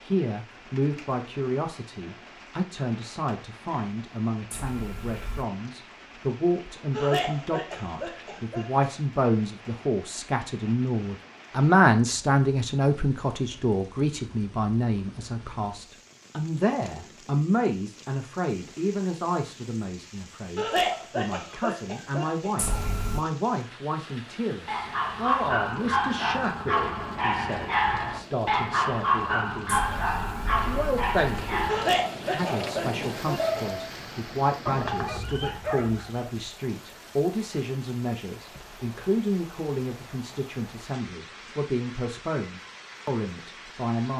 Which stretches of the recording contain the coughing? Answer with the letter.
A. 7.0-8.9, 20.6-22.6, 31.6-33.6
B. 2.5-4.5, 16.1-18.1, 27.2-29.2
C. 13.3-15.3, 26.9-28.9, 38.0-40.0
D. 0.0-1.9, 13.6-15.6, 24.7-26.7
A.